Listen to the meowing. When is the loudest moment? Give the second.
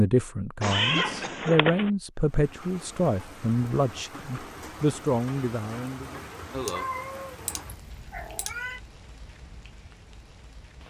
1 s.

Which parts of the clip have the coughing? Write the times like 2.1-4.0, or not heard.
0.6-1.6, 6.5-6.9.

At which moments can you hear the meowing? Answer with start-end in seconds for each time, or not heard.
0.6-1.9, 6.7-8.8.